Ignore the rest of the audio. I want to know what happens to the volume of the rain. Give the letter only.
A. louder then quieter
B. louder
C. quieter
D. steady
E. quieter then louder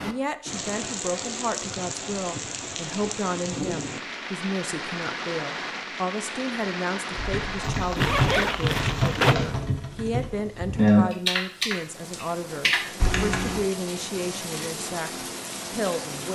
E.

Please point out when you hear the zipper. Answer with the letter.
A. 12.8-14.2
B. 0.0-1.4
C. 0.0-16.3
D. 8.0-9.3
D.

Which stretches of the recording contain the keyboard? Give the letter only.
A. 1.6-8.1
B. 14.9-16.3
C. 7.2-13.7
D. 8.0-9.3
C.